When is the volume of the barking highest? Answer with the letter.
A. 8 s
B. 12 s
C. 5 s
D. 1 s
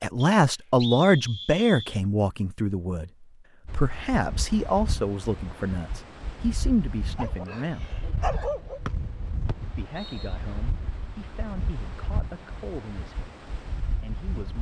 A.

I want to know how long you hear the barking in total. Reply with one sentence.
The barking can be heard for 2 seconds in total.